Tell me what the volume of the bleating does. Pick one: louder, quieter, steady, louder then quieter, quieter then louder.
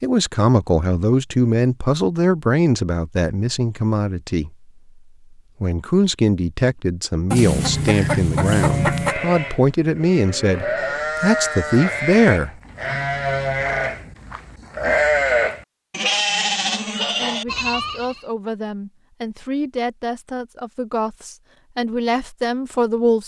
louder.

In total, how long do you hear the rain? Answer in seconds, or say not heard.
not heard.